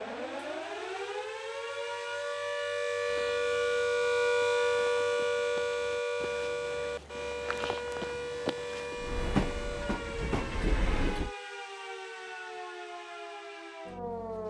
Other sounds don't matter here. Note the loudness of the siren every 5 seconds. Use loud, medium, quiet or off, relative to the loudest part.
loud, loud, medium.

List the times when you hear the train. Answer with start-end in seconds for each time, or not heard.
8.9-11.3.